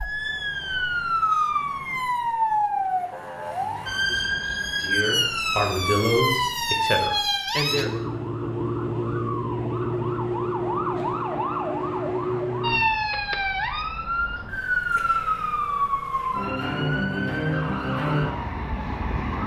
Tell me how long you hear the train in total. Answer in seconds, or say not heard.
not heard.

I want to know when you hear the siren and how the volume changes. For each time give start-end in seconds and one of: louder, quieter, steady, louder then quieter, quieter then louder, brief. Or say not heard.
0.0-19.4 steady.